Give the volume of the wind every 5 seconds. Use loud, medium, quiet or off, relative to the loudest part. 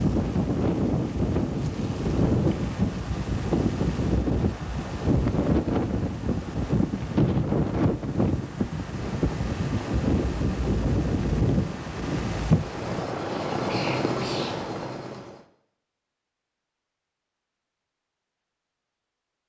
loud, loud, loud, off.